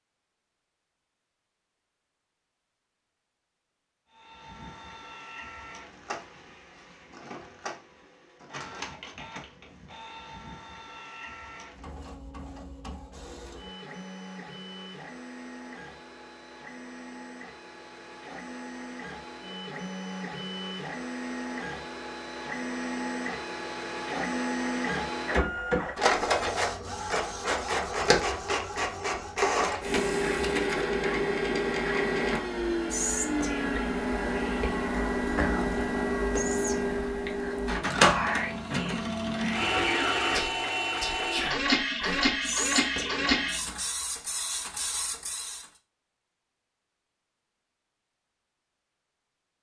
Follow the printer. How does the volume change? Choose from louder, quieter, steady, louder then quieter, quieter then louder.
louder.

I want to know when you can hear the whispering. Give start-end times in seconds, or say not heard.
32.9-43.8.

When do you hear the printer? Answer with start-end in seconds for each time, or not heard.
4.1-45.6.